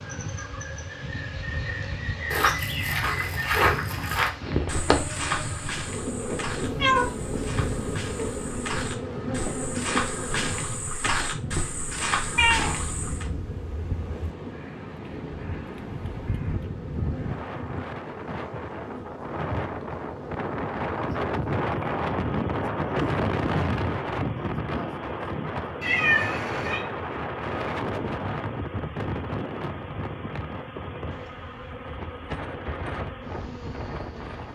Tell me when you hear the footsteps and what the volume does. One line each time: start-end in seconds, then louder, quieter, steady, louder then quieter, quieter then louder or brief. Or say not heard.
2.3-13.3 quieter then louder.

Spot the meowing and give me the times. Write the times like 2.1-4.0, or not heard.
6.6-8.5, 12.3-14.3, 25.8-26.9.